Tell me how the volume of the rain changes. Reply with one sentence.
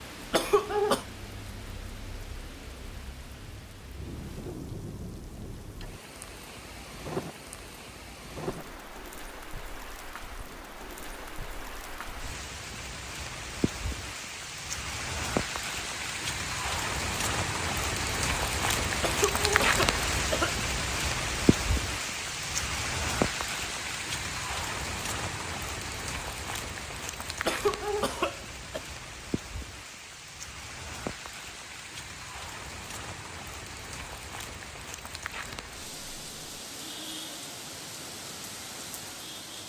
The loudness of the rain goes up, then down.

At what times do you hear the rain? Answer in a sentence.
You can hear the rain from 0.0 to 39.6 s.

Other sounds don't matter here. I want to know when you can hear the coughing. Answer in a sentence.
You can hear the coughing from 0.3 to 1.1 s, from 19.0 to 20.6 s and from 27.4 to 28.8 s.